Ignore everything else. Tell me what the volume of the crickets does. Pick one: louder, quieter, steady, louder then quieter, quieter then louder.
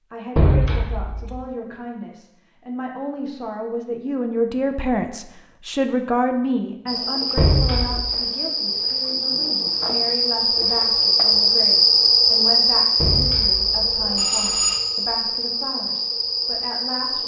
louder then quieter.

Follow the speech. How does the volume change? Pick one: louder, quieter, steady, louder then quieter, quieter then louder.
louder then quieter.